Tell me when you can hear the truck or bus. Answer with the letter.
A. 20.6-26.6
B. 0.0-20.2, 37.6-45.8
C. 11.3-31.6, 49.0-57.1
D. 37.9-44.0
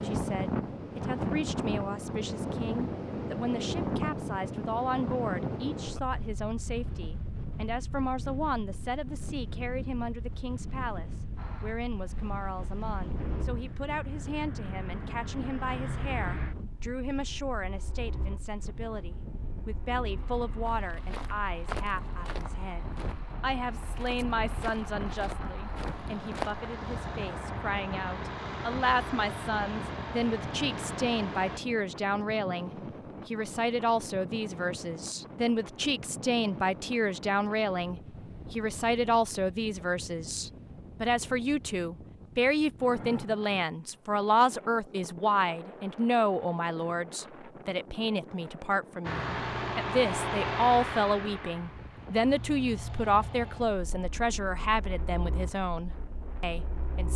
C.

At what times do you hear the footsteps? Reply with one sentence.
The footsteps can be heard from 20.6 to 26.6 s.